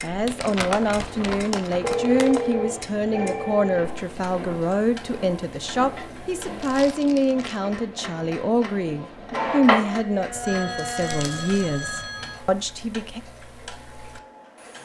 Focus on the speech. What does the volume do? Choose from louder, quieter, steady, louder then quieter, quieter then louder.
steady.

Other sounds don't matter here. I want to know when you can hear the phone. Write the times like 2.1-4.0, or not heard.
1.8-4.0, 10.4-12.4.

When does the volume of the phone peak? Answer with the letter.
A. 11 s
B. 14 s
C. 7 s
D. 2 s
D.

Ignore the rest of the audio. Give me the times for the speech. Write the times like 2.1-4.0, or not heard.
0.0-13.2.